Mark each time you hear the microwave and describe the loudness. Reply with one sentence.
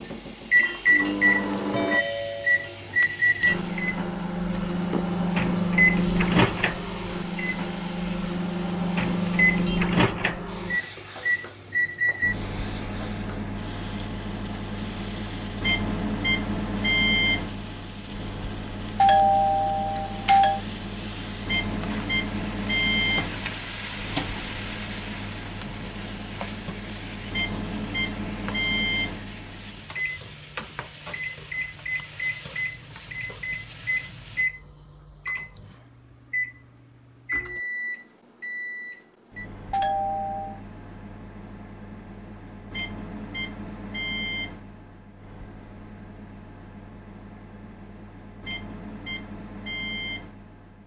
You can hear the microwave from 0.0 to 50.8 s, getting quieter.